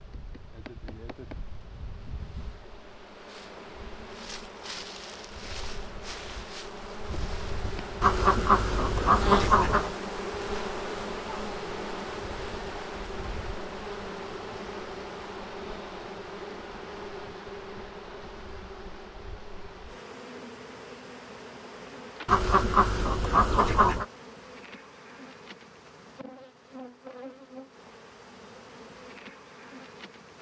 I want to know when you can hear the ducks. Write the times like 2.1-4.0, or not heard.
8.0-9.9, 22.2-24.1.